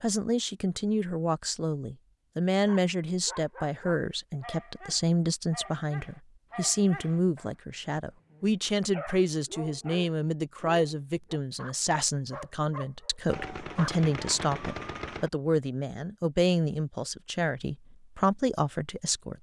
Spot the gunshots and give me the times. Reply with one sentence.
You can hear the gunshots from 13.2 to 15.3 s.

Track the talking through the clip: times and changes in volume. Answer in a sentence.
You can hear the talking from 0.0 to 19.3 s, at a steady volume.